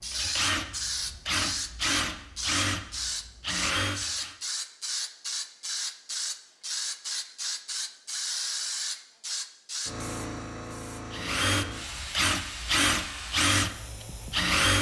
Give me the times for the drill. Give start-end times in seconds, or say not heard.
0.0-4.3, 11.1-14.7.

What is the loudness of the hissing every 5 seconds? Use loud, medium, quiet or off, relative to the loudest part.
loud, loud, medium.